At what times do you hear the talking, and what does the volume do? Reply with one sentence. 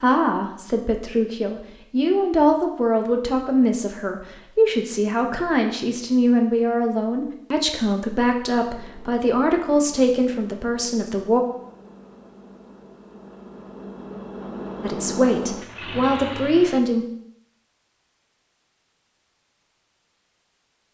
You can hear the talking from 0.0 to 11.4 s, at a steady volume; and briefly from 14.8 to 17.1 s.